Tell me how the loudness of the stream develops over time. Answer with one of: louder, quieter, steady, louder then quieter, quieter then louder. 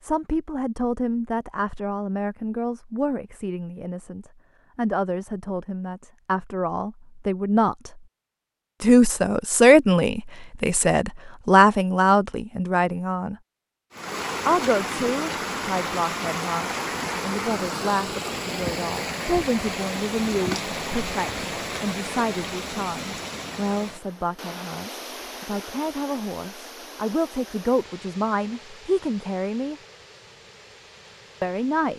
quieter.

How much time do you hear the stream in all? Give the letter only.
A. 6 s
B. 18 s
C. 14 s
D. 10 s
B.